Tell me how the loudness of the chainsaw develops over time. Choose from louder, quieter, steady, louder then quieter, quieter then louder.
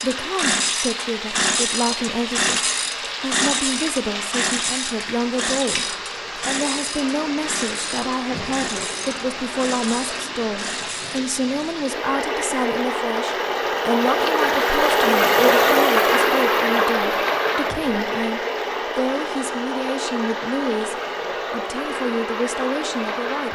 quieter.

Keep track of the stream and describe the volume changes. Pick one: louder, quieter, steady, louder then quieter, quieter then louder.
louder then quieter.